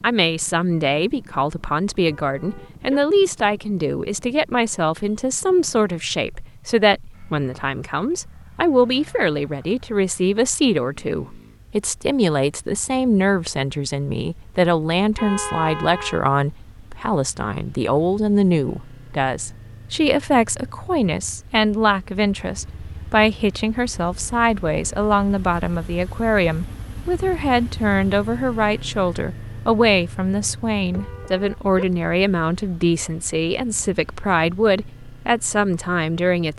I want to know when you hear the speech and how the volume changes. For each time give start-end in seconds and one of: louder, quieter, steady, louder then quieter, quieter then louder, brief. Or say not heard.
0.0-36.5 steady.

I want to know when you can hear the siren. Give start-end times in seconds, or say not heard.
not heard.